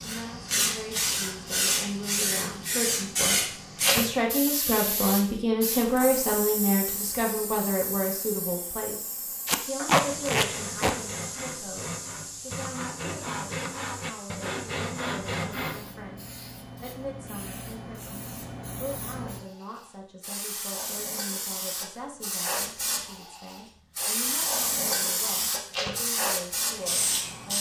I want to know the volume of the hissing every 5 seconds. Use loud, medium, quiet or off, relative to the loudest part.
loud, medium, medium, quiet, loud, loud.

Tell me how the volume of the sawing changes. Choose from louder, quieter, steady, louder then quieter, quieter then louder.
louder.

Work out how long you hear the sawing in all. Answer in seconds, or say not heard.
6 s.